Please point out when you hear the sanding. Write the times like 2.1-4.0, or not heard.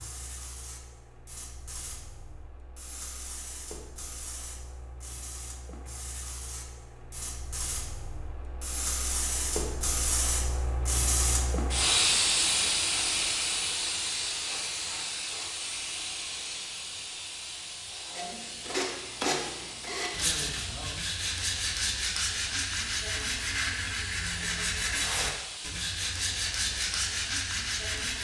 18.1-28.1.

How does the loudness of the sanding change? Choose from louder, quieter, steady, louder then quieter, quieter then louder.
steady.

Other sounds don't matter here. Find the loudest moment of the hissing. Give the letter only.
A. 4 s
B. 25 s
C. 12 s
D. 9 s
C.